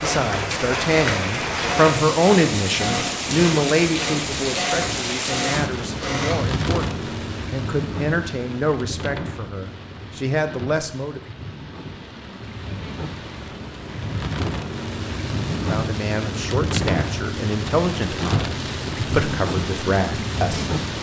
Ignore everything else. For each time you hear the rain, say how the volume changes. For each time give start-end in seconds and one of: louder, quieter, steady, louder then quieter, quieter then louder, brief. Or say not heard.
0.0-20.9 quieter then louder.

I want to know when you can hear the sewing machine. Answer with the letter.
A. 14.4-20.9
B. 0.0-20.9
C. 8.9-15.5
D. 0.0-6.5
D.